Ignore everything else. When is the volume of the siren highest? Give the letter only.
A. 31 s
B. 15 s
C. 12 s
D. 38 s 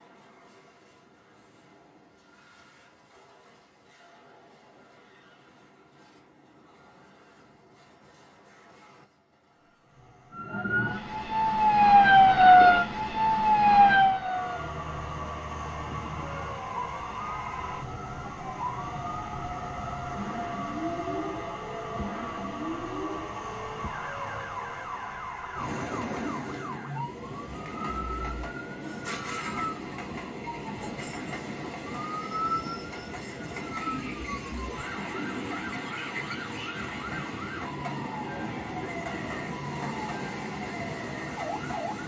C.